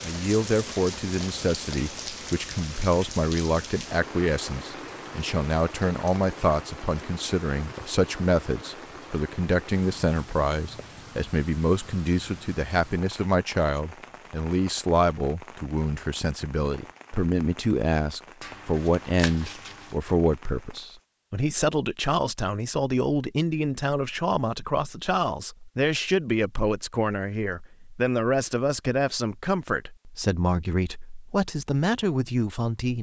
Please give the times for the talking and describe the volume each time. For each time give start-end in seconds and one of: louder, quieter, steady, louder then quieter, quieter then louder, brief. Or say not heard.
0.0-32.9 steady.